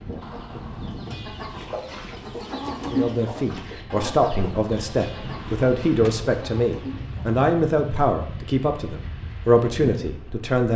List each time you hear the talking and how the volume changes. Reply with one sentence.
You can hear the talking from 2.9 to 10.7 s, at a steady volume.